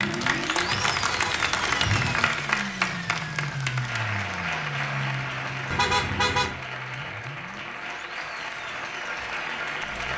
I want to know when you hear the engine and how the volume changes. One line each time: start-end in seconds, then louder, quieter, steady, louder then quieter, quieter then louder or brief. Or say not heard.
0.0-10.1 quieter.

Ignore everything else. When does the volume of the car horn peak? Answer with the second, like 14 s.
6 s.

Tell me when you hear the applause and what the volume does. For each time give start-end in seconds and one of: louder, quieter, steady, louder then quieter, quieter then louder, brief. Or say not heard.
0.0-10.1 quieter.